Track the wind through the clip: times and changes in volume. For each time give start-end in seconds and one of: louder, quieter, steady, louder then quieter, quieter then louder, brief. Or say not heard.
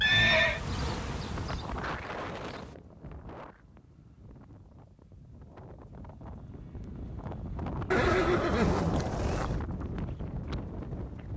0.0-11.3 quieter then louder.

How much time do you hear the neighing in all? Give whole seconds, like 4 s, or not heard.
2 s.